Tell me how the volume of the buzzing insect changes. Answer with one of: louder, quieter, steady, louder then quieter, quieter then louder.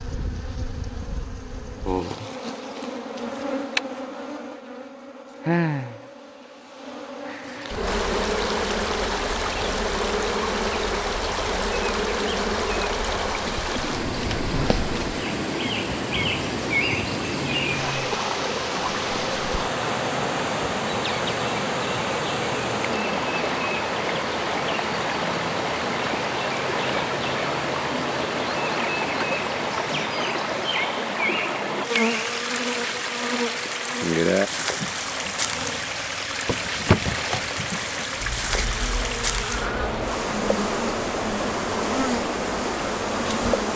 steady.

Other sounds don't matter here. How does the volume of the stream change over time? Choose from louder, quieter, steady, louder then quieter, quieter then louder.
steady.